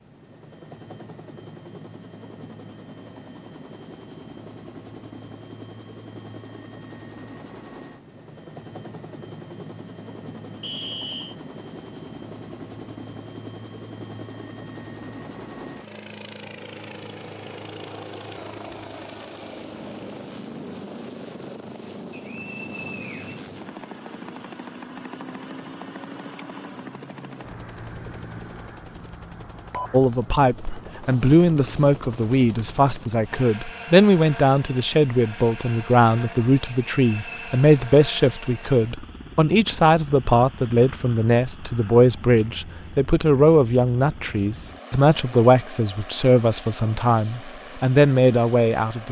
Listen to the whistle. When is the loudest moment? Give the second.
11 s.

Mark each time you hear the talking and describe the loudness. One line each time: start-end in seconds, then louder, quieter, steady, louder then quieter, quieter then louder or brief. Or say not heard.
29.9-49.0 steady.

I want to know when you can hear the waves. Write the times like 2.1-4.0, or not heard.
not heard.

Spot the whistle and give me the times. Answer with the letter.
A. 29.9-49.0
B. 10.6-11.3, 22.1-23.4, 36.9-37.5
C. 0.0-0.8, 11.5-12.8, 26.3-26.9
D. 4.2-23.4
B.